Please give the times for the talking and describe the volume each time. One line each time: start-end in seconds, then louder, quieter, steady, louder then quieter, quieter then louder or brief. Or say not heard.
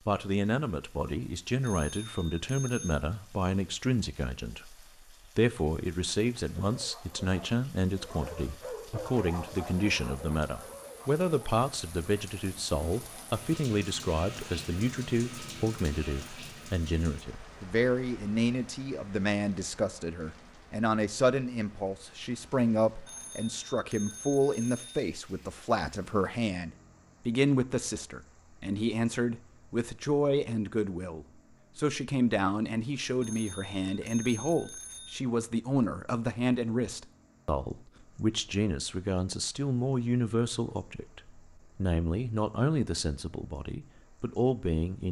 0.1-45.0 steady.